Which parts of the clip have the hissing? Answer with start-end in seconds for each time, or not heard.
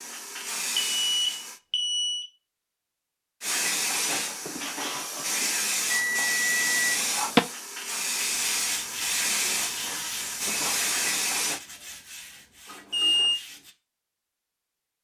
0.0-1.6, 3.4-11.6.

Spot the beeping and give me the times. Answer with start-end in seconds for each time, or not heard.
0.9-2.2, 5.9-7.4, 12.7-13.4.